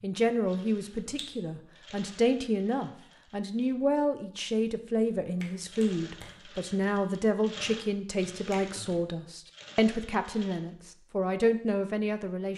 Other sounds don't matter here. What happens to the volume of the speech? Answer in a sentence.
The volume of the speech stays about the same.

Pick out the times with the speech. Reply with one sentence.
You can hear the speech from 0.0 to 12.5 s.